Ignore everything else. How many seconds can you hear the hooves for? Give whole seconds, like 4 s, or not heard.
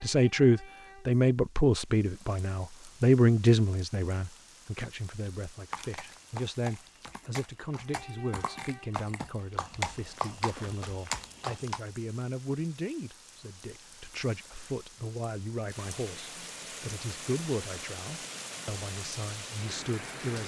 6 s.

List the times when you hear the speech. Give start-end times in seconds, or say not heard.
0.0-20.4.